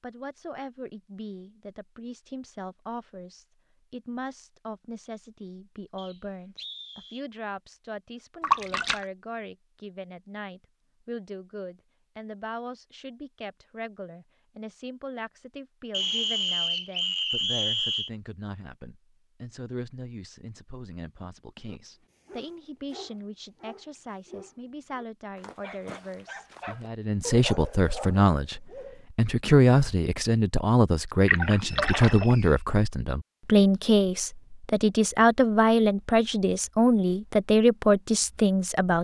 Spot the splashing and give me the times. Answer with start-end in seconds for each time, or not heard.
8.4-9.1, 31.2-32.4.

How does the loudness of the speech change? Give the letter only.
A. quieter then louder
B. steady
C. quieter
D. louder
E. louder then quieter
D.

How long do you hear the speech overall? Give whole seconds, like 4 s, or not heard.
39 s.